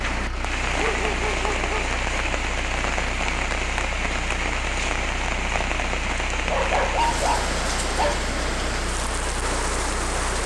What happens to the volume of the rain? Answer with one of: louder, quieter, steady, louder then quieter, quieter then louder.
steady.